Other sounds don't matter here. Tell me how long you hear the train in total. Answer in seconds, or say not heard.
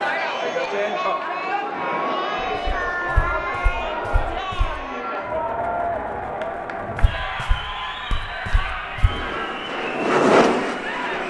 2 s.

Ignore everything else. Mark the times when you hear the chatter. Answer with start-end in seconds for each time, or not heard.
0.0-11.2.